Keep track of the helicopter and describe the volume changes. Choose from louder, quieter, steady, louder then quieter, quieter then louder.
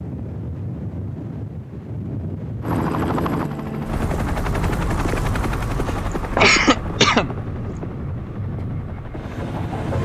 quieter.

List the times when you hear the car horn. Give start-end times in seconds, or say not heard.
not heard.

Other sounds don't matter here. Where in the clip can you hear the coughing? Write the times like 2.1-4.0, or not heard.
5.8-7.8.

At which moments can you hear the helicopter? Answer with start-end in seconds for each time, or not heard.
2.6-10.0.